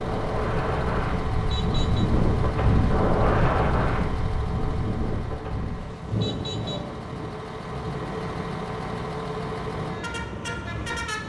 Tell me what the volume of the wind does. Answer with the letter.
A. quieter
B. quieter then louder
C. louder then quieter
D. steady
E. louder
A.